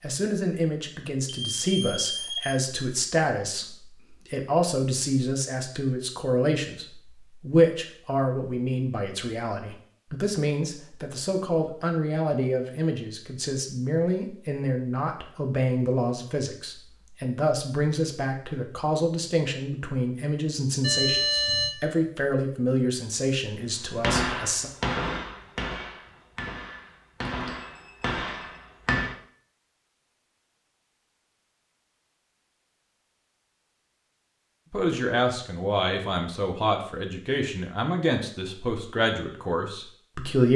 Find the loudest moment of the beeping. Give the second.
21 s.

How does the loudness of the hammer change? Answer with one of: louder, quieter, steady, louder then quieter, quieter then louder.
quieter then louder.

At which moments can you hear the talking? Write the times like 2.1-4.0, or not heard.
0.0-24.7, 34.7-40.5.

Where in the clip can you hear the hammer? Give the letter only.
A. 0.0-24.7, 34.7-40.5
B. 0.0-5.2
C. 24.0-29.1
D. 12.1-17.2
C.